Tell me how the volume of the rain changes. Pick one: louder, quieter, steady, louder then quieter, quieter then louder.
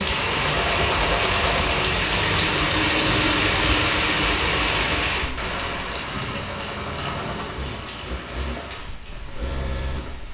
quieter.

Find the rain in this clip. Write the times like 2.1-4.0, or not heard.
0.0-10.2.